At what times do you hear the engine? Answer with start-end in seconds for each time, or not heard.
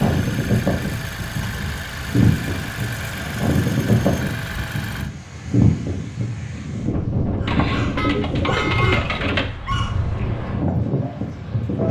0.0-5.1.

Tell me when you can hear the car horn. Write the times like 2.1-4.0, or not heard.
7.9-9.1.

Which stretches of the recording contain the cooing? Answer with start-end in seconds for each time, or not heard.
7.5-9.5.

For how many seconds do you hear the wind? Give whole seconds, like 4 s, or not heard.
12 s.